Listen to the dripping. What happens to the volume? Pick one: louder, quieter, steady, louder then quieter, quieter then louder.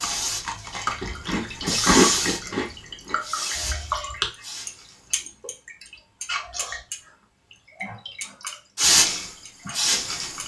louder then quieter.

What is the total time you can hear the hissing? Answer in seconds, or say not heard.
7 s.